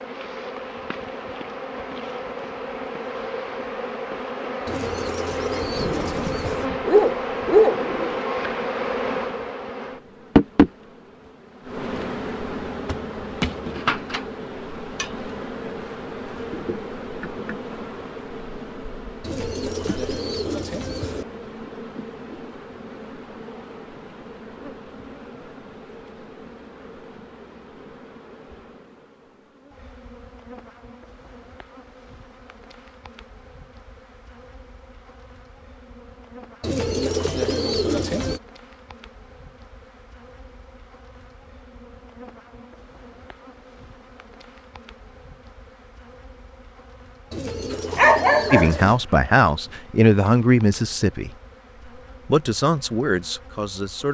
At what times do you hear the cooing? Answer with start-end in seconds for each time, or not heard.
4.7-6.7, 19.2-21.2, 36.6-38.4, 47.3-49.0.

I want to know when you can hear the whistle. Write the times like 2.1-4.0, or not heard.
not heard.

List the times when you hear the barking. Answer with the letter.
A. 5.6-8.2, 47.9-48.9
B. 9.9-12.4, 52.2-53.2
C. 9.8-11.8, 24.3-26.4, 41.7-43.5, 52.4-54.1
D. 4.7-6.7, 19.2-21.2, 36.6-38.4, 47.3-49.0
A.